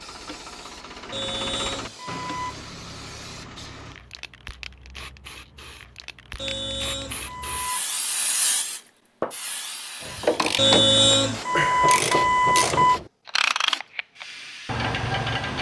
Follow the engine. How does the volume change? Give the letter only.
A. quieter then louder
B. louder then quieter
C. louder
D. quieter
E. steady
B.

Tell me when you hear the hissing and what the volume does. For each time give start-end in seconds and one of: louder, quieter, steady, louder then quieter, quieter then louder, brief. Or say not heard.
0.0-15.5 louder then quieter.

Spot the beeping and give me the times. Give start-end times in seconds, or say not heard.
1.1-2.6, 6.3-8.0, 10.6-13.0.